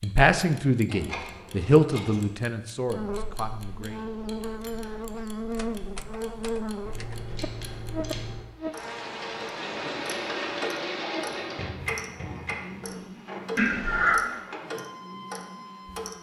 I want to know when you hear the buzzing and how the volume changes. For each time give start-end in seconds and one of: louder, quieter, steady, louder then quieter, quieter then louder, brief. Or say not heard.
2.9-16.1 quieter.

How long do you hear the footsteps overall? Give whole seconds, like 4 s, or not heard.
not heard.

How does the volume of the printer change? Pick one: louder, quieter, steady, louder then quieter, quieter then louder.
quieter.